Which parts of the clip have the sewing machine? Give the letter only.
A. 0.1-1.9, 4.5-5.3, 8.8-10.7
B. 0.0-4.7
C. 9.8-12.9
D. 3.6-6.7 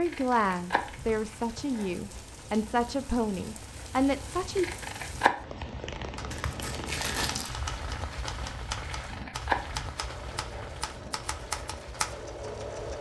C.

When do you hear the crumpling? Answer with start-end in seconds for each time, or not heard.
6.3-7.6.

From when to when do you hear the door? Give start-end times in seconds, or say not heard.
not heard.